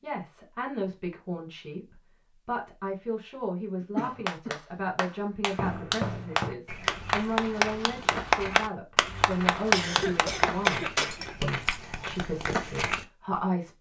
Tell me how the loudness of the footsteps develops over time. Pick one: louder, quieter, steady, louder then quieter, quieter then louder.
quieter then louder.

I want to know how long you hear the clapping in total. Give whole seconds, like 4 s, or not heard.
8 s.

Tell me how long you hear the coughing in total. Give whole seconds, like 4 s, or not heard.
2 s.